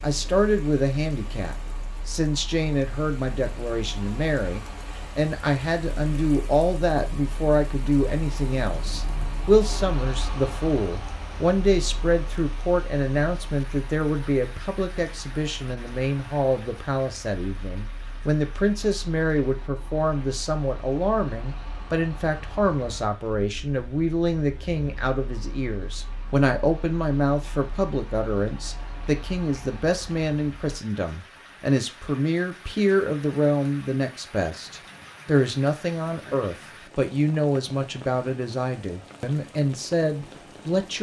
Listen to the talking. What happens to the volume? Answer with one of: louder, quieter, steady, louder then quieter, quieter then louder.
steady.